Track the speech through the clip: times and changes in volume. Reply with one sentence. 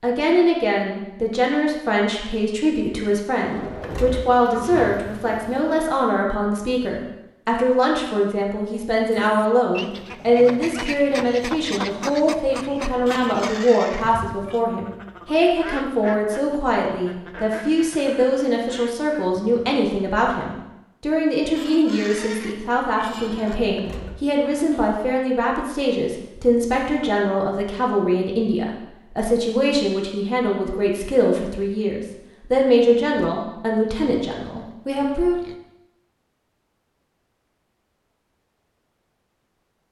You can hear the speech from 0.0 to 35.4 s, at a steady volume.